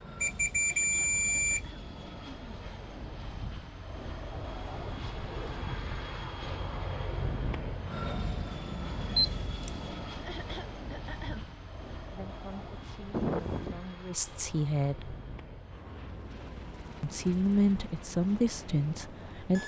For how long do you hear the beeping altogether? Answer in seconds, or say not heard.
3 s.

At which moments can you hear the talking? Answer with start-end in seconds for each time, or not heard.
12.0-15.2, 17.0-19.6.